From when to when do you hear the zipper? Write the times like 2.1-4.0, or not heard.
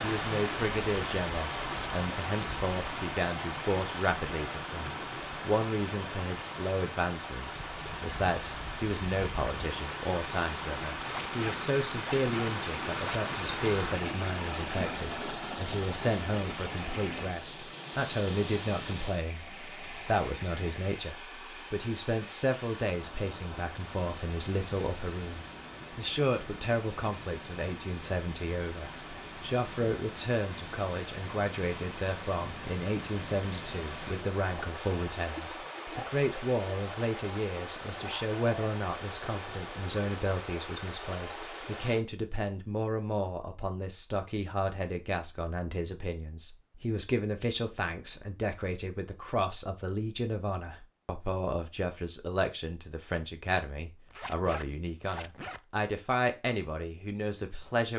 11.0-13.4, 54.1-55.6.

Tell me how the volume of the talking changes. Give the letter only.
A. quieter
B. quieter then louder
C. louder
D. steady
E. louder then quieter
D.